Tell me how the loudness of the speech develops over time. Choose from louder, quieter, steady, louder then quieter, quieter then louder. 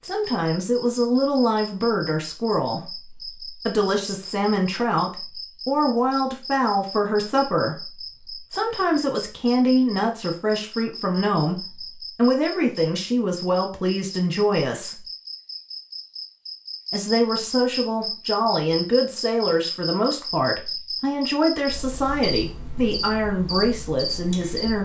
steady.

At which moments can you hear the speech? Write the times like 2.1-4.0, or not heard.
0.0-15.1, 16.9-24.8.